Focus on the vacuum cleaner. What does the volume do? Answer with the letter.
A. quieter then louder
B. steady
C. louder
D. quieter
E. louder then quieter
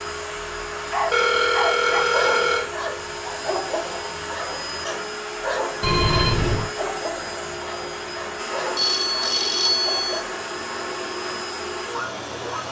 B.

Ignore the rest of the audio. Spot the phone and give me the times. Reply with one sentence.
The phone can be heard from 1.1 to 2.7 s, from 5.8 to 6.7 s and from 8.8 to 10.2 s.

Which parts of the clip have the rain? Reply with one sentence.
The rain can't be heard in this clip.